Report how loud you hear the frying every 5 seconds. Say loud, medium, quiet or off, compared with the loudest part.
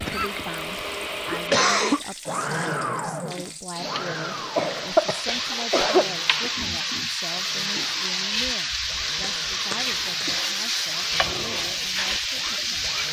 quiet, loud, loud.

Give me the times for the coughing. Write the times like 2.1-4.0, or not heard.
0.1-2.0, 4.5-6.5, 9.2-10.3.